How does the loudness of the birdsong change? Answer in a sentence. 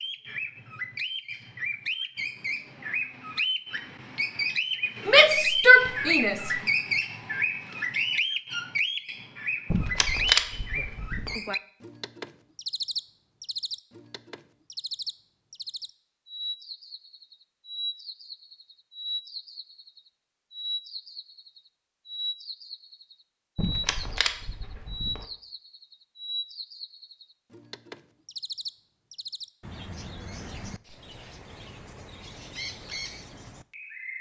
The loudness of the birdsong goes down.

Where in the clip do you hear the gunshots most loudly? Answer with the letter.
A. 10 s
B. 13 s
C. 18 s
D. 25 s
A.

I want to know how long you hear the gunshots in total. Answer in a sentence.
You can hear the gunshots for 3 seconds altogether.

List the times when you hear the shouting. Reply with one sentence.
The shouting can be heard from 5.0 to 6.5 s.